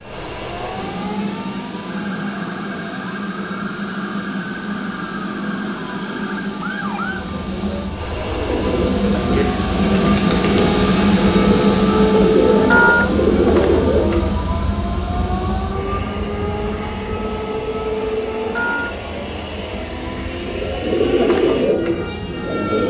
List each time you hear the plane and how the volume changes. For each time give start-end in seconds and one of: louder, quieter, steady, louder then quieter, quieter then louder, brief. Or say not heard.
0.0-22.8 louder then quieter.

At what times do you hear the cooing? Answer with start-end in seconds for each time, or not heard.
8.1-14.3, 20.4-22.8.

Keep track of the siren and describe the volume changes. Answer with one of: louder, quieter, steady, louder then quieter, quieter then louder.
louder then quieter.